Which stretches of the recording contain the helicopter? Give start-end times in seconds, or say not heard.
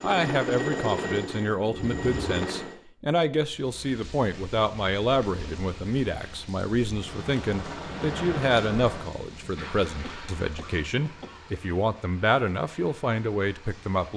0.0-2.8, 6.8-14.1.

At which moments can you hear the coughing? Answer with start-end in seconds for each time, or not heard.
10.0-11.4.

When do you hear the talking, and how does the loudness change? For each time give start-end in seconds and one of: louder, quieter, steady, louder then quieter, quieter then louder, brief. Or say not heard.
0.0-14.1 steady.